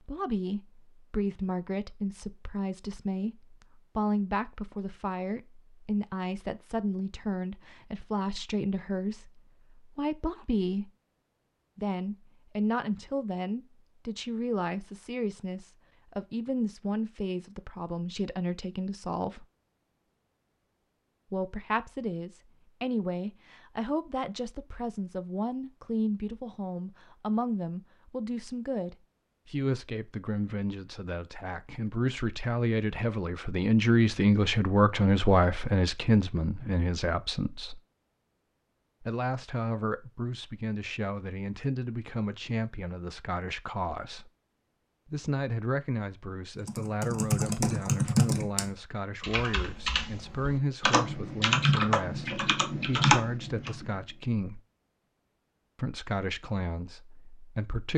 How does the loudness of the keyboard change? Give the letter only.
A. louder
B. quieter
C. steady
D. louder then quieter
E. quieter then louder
E.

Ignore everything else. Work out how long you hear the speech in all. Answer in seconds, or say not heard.
52 s.